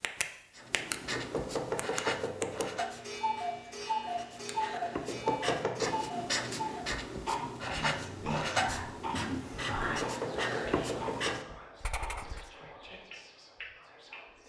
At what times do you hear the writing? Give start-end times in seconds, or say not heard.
0.6-12.5.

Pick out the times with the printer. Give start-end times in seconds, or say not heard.
not heard.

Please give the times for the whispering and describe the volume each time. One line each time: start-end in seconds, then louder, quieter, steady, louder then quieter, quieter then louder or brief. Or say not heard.
7.2-14.4 quieter.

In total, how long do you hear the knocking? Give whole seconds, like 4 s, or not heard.
4 s.